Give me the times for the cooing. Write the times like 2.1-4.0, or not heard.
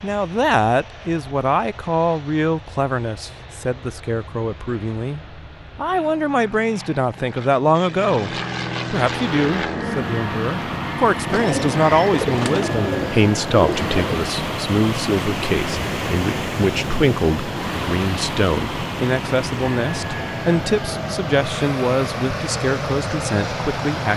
11.3-14.1.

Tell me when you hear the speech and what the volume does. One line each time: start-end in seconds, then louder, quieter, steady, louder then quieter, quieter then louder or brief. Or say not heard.
0.0-24.1 steady.